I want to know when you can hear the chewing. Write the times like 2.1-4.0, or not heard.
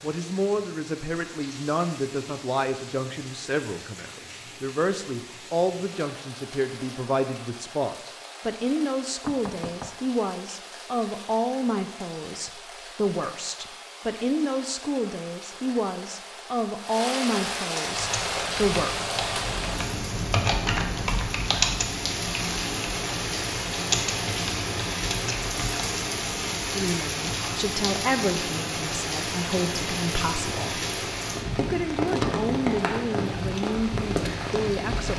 not heard.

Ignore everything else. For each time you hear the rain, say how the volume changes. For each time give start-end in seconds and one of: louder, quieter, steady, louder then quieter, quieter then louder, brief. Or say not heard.
0.0-35.1 louder.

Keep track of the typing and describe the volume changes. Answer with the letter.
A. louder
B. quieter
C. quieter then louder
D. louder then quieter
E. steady
D.